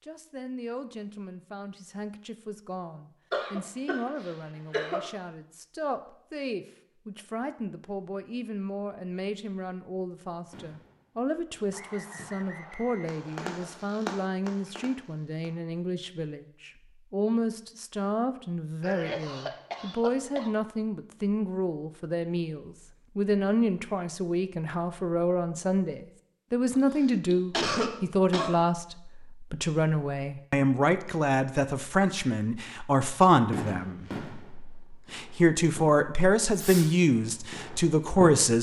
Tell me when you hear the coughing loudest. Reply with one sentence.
The volume of the coughing peaks at 28 seconds.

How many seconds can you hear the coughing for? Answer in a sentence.
You can hear the coughing for 5 seconds altogether.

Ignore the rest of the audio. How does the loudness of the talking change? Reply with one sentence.
The volume of the talking goes up.